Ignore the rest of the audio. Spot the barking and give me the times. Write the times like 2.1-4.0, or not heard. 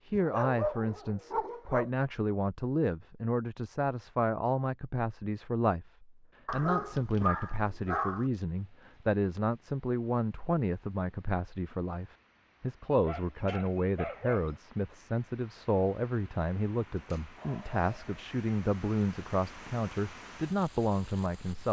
0.1-1.9, 6.5-8.3, 12.9-14.6, 16.9-18.1.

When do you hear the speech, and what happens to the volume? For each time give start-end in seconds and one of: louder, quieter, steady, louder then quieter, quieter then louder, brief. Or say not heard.
0.1-21.6 steady.